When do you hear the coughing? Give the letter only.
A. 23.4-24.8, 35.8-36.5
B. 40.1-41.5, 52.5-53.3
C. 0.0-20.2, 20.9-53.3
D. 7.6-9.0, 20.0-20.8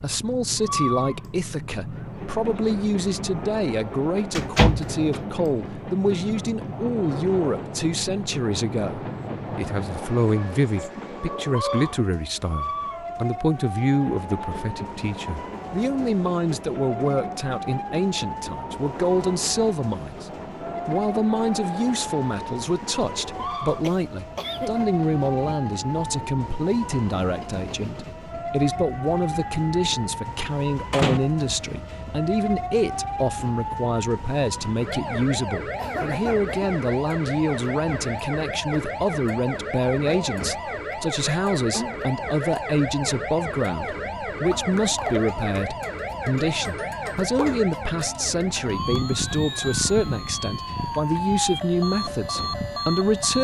A.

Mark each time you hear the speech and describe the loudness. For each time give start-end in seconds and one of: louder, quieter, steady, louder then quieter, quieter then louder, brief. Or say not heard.
0.0-20.2 steady
20.9-53.3 steady.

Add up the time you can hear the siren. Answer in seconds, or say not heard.
53 s.